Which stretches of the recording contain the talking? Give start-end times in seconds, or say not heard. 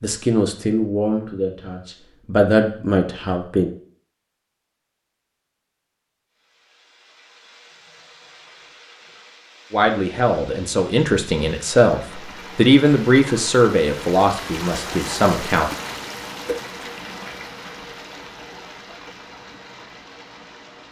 0.0-3.7, 9.7-15.7.